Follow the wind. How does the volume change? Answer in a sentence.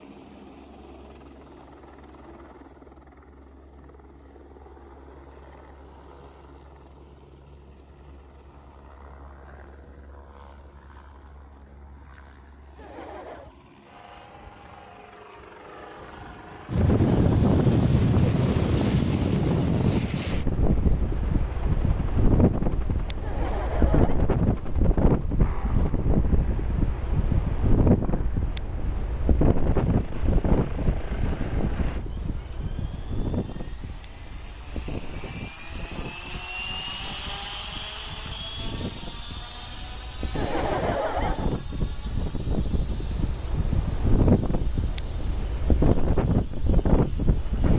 The volume of the wind goes down, then up.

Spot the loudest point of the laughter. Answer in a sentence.
The volume of the laughter peaks at 41 seconds.